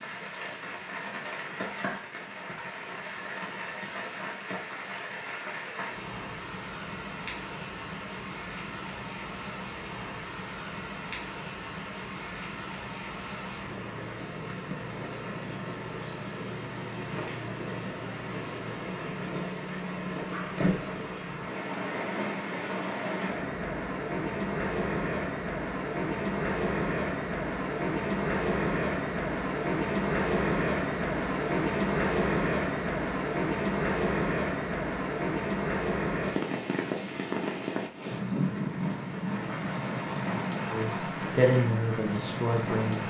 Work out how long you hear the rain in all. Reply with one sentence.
The rain can be heard for 43 seconds in total.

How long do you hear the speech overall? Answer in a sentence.
You can hear the speech for 2 seconds altogether.